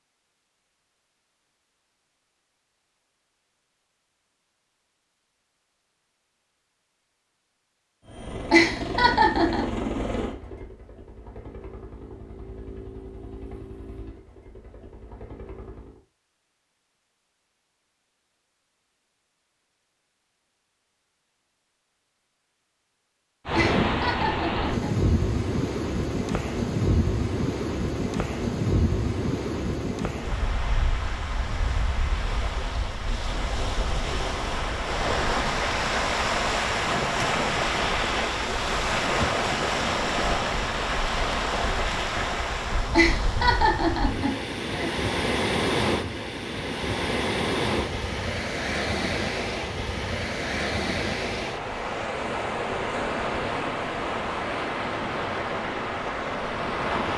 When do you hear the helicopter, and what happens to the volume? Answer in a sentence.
The helicopter can be heard from 8.1 to 16.0 s, getting quieter.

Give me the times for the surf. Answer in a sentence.
The surf can be heard from 23.4 to 57.1 s.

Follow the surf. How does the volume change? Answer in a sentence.
The loudness of the surf stays about the same.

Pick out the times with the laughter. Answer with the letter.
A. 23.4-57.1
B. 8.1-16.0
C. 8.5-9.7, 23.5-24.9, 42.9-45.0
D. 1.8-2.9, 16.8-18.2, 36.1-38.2
C.